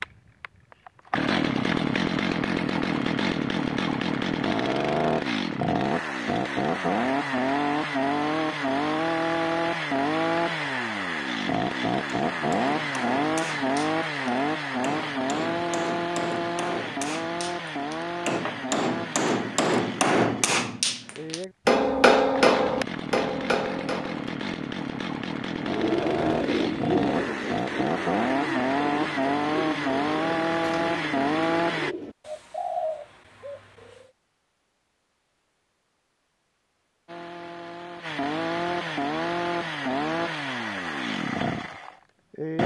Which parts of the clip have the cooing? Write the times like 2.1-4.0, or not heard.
25.6-34.1.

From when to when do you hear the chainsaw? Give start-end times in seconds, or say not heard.
0.0-31.9, 37.0-42.6.